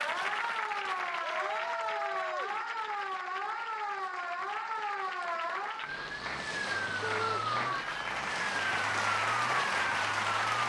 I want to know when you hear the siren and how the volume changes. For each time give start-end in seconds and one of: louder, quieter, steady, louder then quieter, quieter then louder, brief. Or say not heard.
0.0-10.6 steady.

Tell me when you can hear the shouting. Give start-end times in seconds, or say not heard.
1.2-2.6, 7.0-7.5.